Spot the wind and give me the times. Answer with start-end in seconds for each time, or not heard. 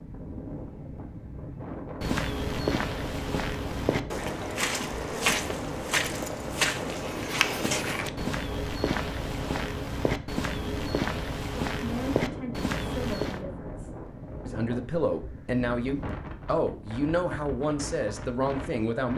0.0-19.1.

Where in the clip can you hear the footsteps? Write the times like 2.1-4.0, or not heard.
2.0-13.4.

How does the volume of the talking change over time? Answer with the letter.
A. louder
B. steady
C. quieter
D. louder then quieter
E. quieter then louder
A.